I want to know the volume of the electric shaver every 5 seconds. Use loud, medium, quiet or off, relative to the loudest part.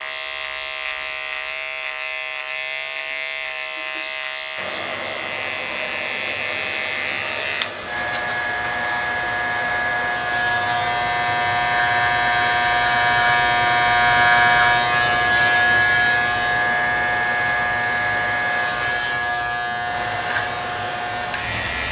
medium, medium, loud, loud, medium.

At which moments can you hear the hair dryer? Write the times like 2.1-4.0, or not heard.
4.5-21.8.